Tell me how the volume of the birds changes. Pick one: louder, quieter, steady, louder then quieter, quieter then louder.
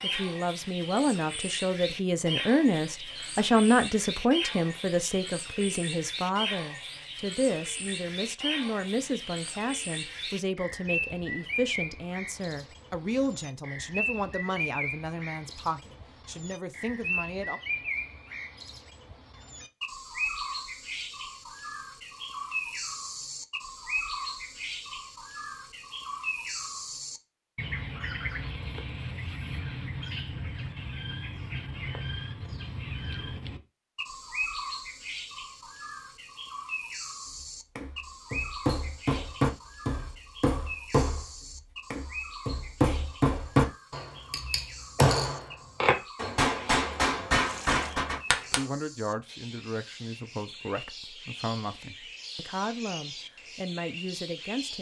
quieter.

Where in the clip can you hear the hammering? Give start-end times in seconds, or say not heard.
37.8-41.3, 41.9-48.6.